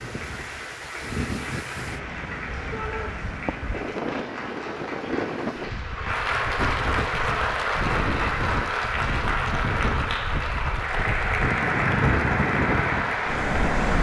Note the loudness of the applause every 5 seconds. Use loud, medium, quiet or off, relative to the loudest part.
medium, loud, loud.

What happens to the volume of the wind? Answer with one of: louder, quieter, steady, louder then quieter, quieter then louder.
louder.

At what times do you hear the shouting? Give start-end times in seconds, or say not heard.
2.7-3.1.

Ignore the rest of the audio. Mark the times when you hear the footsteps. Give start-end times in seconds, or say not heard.
not heard.